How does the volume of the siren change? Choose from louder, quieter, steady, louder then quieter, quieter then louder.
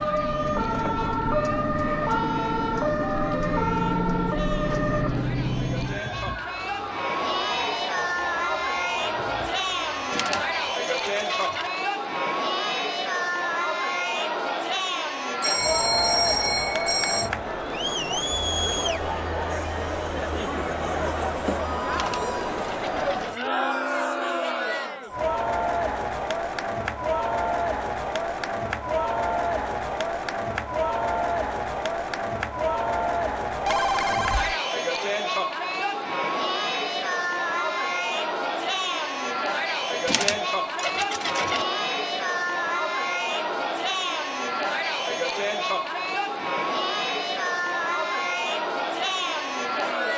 quieter.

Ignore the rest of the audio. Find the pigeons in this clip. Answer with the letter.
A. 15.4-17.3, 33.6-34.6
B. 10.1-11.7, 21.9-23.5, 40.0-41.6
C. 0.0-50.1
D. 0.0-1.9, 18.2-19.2
B.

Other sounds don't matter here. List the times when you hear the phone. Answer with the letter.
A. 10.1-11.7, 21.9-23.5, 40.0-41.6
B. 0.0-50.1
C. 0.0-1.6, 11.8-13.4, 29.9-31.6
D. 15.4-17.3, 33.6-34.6
D.